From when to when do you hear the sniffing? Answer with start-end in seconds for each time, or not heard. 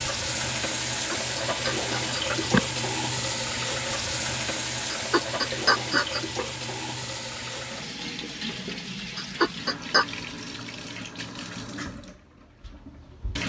1.1-2.6, 4.9-6.2, 9.2-10.1.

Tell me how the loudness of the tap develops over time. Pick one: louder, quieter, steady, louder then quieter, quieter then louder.
quieter.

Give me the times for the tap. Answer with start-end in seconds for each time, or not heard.
0.0-13.4.